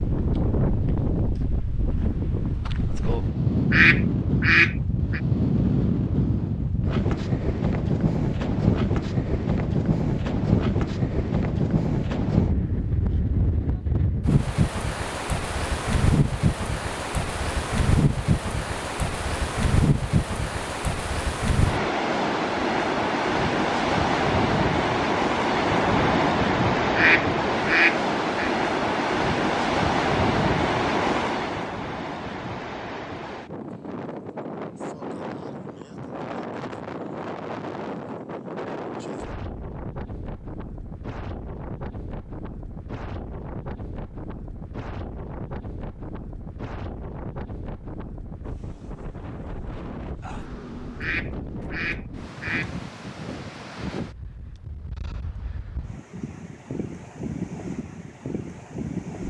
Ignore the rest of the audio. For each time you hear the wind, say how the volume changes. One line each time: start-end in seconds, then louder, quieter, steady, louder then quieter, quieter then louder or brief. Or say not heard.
0.0-59.2 quieter.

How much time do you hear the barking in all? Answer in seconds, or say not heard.
not heard.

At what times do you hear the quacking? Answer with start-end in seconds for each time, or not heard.
3.7-5.2, 26.9-28.5, 51.0-52.7.